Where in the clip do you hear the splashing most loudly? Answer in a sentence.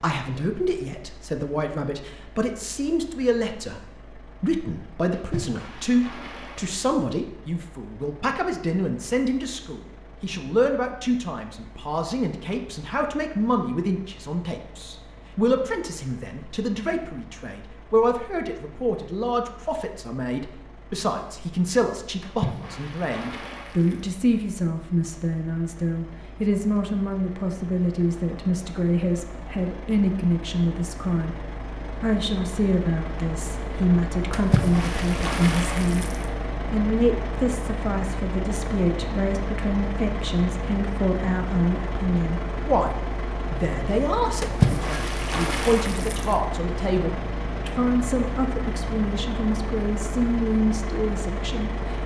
The volume of the splashing peaks at 45 seconds.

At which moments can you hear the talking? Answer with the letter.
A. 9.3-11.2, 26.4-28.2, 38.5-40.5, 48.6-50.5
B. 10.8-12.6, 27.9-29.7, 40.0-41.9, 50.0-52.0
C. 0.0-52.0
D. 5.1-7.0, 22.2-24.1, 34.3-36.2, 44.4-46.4
C.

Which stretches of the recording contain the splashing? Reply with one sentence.
You can hear the splashing from 5.1 to 7.0 s, from 22.2 to 24.1 s, from 34.3 to 36.2 s and from 44.4 to 46.4 s.